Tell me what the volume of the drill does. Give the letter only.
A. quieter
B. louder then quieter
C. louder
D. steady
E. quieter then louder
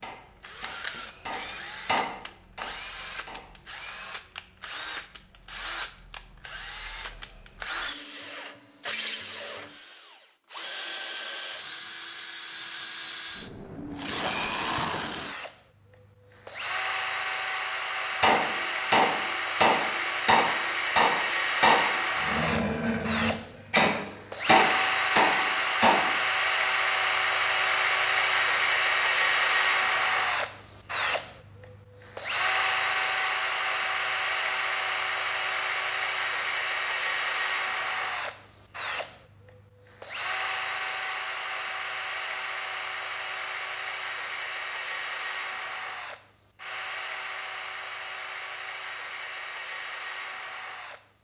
B.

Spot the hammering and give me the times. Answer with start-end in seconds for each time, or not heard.
0.0-3.5, 18.2-26.1.